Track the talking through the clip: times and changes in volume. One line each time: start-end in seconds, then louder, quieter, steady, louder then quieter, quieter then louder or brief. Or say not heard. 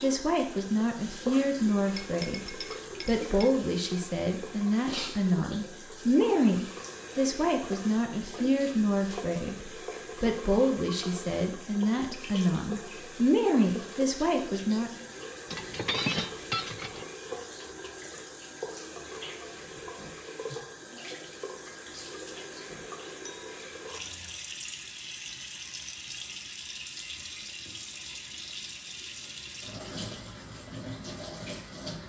0.0-14.9 steady.